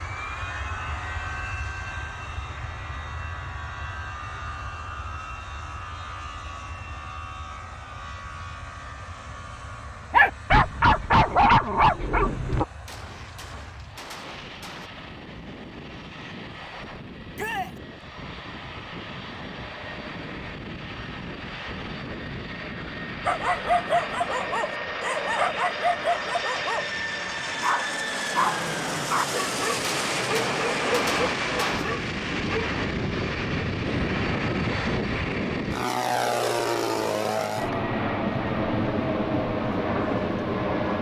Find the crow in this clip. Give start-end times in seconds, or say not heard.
not heard.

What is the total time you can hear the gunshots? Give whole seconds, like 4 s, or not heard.
4 s.